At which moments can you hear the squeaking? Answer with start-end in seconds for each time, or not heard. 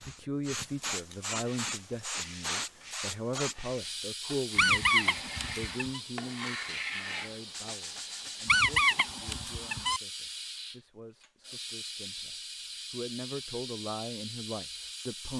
4.5-6.0, 8.4-10.0.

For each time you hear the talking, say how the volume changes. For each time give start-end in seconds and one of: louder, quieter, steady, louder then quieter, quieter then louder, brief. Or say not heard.
0.0-15.3 quieter then louder.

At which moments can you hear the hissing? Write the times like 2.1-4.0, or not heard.
0.0-15.3.